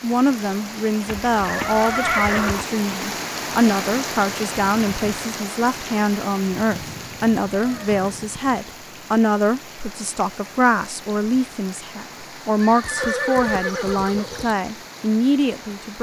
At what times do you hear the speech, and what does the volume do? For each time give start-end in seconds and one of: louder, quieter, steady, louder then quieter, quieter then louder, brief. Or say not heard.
0.0-15.9 steady.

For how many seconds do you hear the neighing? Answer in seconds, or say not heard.
4 s.